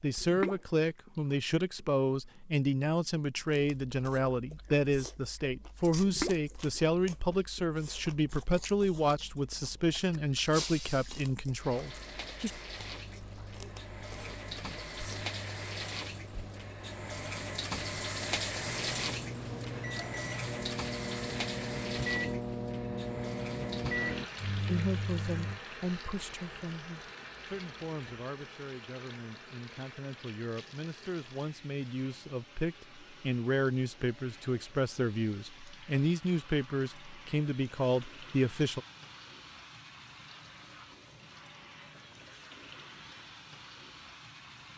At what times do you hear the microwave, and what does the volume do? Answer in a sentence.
You can hear the microwave from 12.7 to 25.6 s, getting louder.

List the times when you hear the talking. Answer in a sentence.
The talking can be heard from 0.0 to 12.5 s and from 24.6 to 38.8 s.